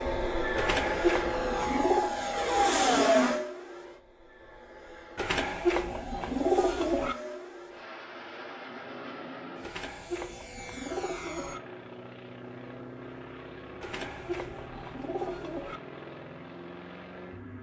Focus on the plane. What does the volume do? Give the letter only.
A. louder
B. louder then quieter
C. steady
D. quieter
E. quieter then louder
D.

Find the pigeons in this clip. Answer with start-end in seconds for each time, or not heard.
0.6-2.1, 5.2-7.2, 9.6-11.6, 13.8-15.8.